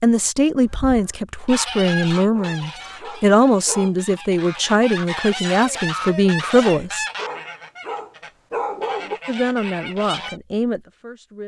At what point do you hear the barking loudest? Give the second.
9 s.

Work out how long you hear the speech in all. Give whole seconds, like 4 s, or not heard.
9 s.